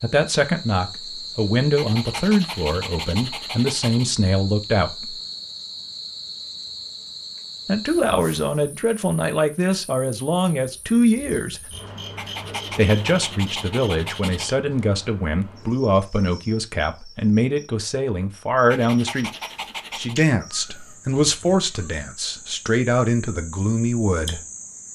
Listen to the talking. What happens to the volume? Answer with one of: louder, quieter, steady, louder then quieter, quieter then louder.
steady.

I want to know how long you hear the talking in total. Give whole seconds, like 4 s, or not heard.
20 s.